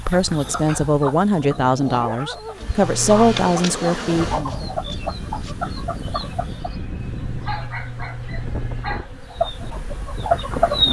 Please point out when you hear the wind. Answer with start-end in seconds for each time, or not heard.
4.1-10.8.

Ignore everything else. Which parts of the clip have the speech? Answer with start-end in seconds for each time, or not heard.
0.1-4.7.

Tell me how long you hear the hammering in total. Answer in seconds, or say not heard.
not heard.